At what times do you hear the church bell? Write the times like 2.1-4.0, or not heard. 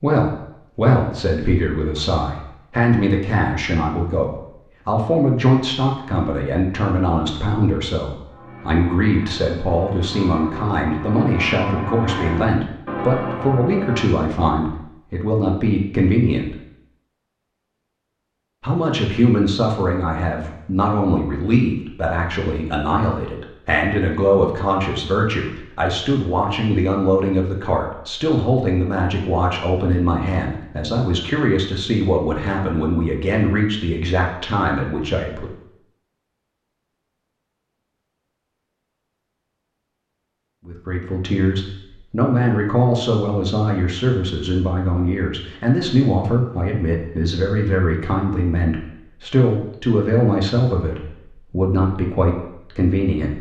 8.2-14.2.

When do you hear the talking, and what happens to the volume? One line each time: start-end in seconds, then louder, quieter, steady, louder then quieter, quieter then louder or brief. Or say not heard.
0.0-16.6 steady
18.6-35.5 steady
40.6-53.3 steady.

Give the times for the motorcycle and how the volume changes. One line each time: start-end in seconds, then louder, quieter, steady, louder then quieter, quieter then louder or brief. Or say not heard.
not heard.